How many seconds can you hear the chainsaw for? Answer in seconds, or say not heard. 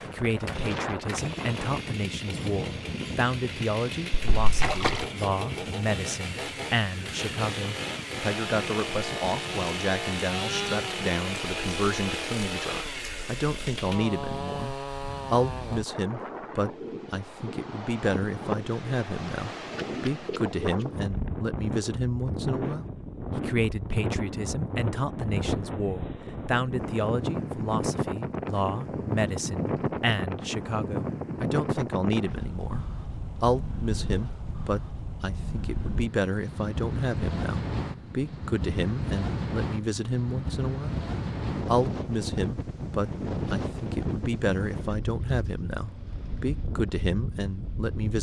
16 s.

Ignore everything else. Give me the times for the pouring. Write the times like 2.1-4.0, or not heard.
4.1-5.0.